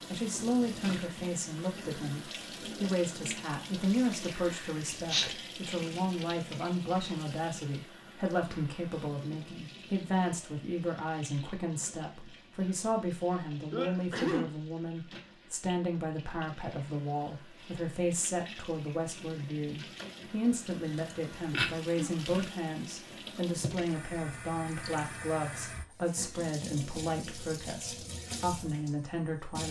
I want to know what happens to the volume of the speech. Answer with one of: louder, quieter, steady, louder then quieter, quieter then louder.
steady.